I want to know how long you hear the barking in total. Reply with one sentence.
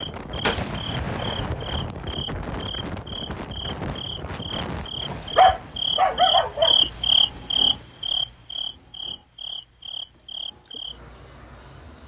The barking can be heard for 2 seconds in total.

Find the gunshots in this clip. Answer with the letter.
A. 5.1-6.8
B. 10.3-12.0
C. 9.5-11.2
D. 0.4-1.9
D.